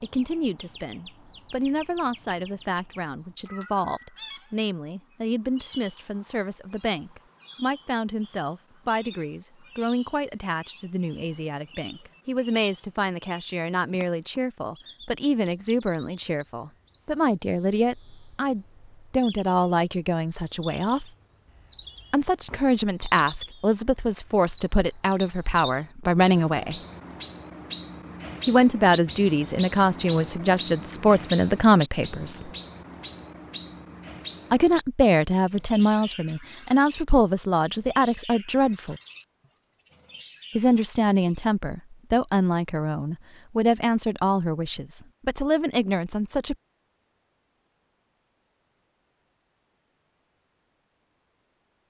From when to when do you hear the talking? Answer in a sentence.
You can hear the talking from 0.0 to 21.1 s, from 22.1 to 26.8 s, from 28.4 to 32.5 s, from 34.5 to 39.0 s and from 40.5 to 46.5 s.